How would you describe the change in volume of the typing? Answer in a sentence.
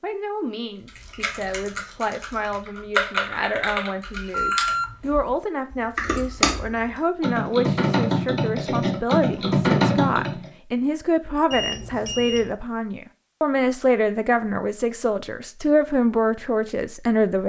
The volume of the typing goes up.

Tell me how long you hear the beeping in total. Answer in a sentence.
The beeping can be heard for 2 seconds in total.